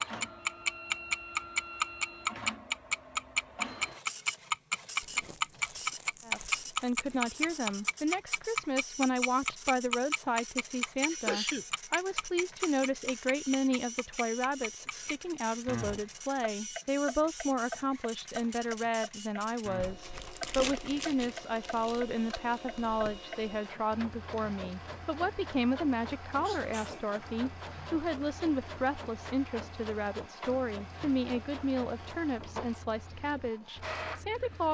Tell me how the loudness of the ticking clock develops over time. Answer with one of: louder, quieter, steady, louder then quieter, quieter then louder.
quieter.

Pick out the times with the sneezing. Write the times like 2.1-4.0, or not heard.
11.1-11.7, 26.4-27.1.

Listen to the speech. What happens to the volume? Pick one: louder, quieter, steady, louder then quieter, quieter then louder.
steady.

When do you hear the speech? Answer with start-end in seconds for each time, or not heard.
6.2-34.6.